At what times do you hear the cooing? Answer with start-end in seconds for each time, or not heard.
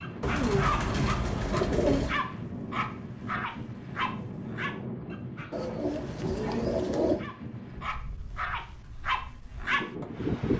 0.2-2.2, 5.5-7.2.